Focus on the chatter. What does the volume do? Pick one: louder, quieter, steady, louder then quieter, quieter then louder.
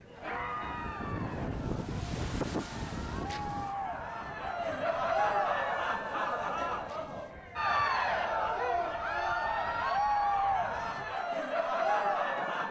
louder.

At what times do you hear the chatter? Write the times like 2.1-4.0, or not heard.
0.1-12.6.